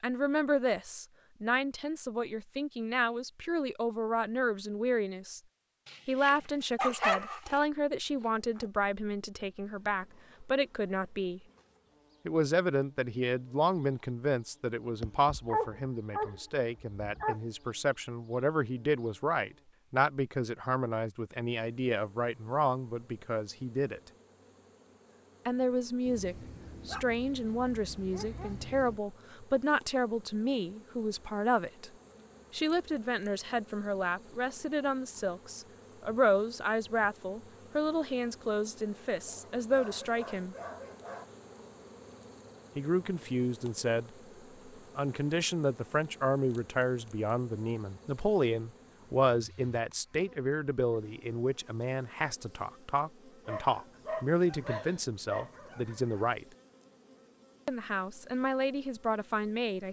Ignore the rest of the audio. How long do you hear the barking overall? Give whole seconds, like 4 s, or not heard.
12 s.